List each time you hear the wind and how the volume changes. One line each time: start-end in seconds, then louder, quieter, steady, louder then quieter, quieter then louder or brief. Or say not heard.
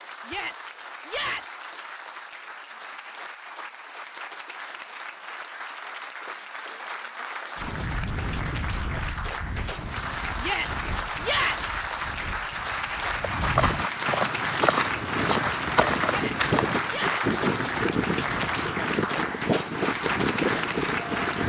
7.5-21.4 quieter then louder.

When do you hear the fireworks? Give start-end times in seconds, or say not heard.
not heard.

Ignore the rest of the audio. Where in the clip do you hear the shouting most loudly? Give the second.
11 s.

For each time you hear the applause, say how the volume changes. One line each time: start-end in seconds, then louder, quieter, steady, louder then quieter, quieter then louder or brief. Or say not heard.
0.0-21.4 louder.